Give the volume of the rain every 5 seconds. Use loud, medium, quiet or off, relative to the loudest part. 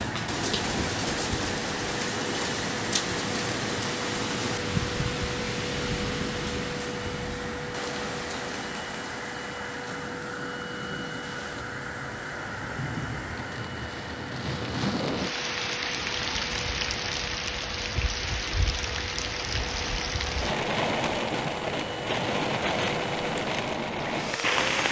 loud, medium, medium, loud, loud.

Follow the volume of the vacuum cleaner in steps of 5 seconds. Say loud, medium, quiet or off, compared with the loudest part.
loud, loud, loud, medium, loud.